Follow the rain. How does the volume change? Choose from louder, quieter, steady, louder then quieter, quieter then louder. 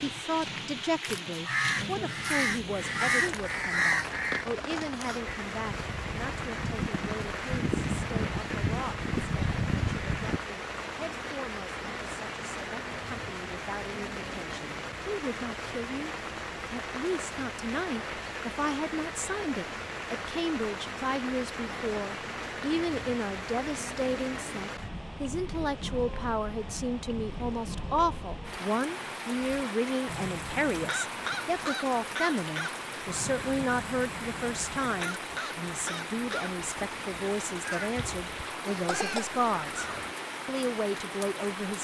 steady.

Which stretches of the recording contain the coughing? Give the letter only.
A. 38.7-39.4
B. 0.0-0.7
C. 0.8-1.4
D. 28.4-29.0
A.